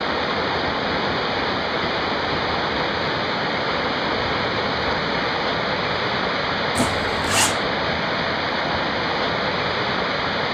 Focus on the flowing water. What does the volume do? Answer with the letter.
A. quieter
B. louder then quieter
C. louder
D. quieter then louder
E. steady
E.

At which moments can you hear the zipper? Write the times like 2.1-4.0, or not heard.
6.8-7.5.